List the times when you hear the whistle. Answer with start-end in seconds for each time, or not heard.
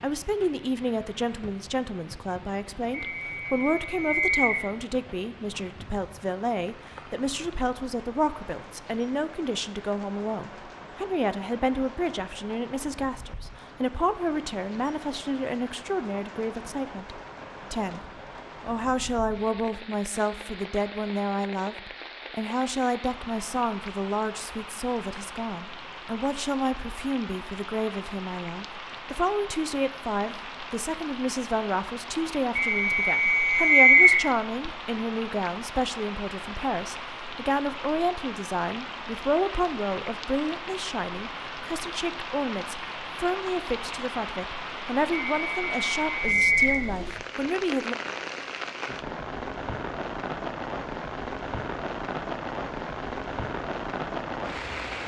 2.9-4.6, 32.5-34.2, 45.1-46.8.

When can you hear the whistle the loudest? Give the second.
34 s.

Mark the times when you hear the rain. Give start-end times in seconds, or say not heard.
0.0-55.0.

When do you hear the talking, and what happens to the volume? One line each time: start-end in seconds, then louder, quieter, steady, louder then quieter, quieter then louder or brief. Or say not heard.
0.0-18.0 steady
18.6-48.0 steady.